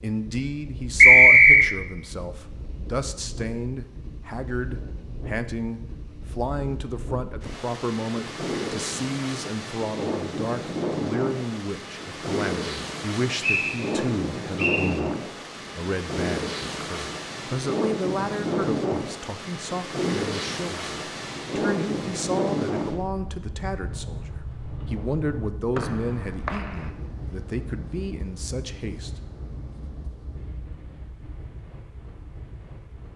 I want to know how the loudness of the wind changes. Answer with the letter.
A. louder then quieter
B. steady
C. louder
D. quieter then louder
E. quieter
A.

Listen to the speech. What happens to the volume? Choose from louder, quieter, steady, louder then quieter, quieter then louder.
steady.